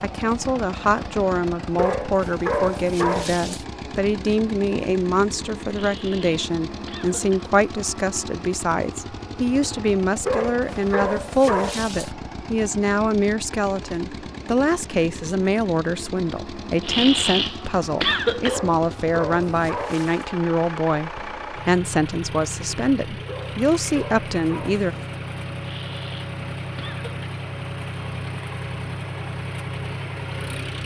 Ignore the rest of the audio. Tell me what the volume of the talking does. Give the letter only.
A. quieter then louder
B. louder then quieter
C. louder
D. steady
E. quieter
D.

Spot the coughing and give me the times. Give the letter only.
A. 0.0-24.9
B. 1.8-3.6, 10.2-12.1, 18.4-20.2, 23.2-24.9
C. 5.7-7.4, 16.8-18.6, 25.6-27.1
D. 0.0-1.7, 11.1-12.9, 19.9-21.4
C.